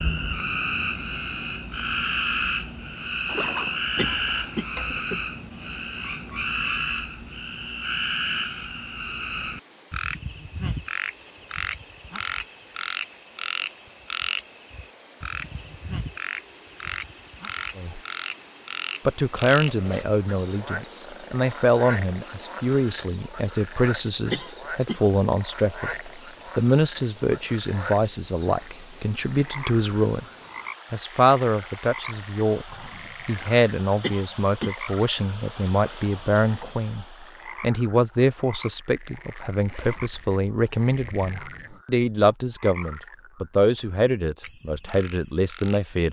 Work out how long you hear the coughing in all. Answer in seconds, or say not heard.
3 s.